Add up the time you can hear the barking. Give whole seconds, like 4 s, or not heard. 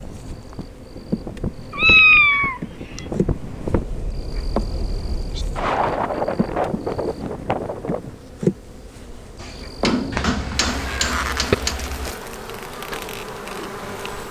not heard.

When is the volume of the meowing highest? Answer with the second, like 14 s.
2 s.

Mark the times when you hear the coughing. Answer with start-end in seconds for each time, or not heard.
not heard.